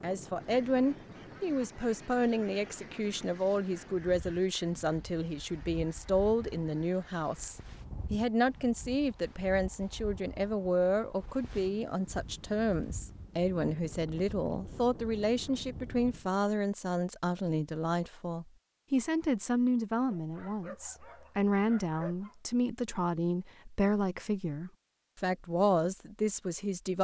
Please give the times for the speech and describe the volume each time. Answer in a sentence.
You can hear the speech from 0.0 to 26.9 s, at a steady volume.